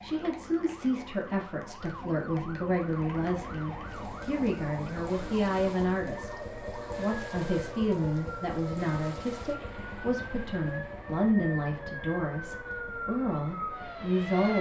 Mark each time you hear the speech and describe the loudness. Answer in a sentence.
You can hear the speech from 0.0 to 14.5 s, at a steady volume.